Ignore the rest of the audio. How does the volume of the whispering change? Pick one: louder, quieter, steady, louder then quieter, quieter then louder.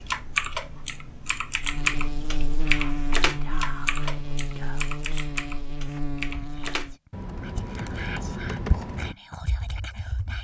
quieter then louder.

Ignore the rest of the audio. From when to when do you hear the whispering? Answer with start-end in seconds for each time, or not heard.
2.6-10.3.